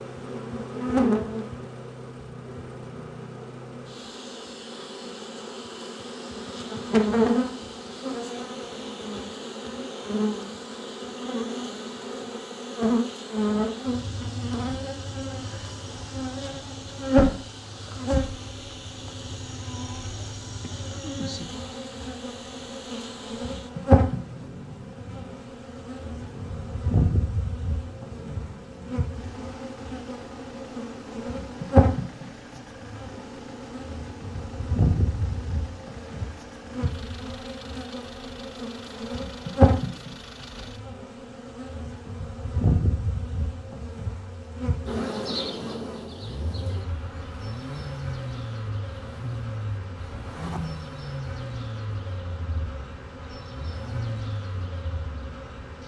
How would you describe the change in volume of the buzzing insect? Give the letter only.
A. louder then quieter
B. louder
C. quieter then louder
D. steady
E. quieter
E.